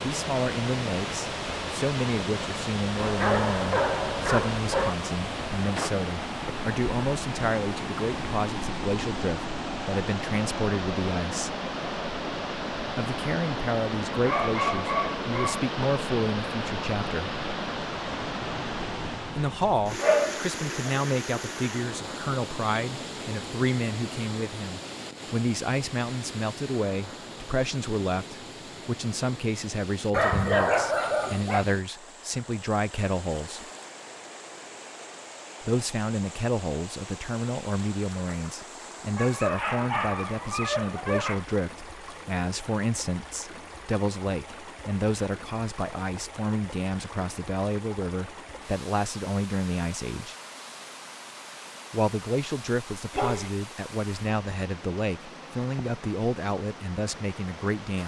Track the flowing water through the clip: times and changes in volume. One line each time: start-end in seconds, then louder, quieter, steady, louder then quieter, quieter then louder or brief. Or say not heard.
0.0-58.0 quieter.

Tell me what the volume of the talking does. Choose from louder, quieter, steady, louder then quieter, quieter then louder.
steady.